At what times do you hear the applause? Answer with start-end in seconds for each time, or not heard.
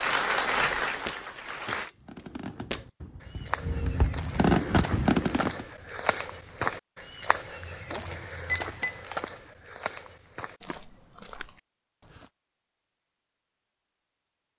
0.0-1.9.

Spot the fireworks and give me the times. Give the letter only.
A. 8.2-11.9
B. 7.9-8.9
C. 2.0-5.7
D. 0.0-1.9
C.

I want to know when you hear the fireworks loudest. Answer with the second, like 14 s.
5 s.